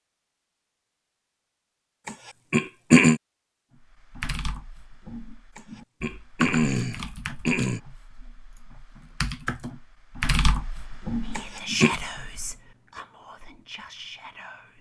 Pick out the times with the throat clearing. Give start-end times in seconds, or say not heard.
2.0-3.2, 5.5-7.8, 11.3-11.9.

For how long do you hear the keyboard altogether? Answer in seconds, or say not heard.
9 s.